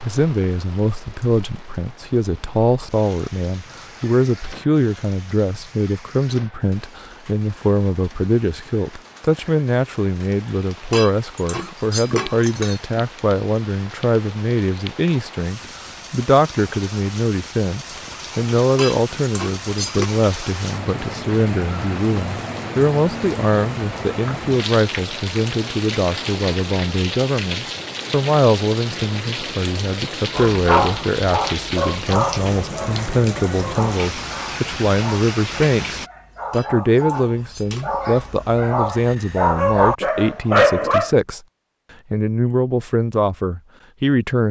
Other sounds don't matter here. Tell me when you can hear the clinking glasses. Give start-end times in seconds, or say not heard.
10.9-12.8, 18.8-20.1, 36.5-38.0.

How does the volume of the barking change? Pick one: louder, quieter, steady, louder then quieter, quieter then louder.
quieter then louder.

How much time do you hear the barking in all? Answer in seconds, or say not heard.
11 s.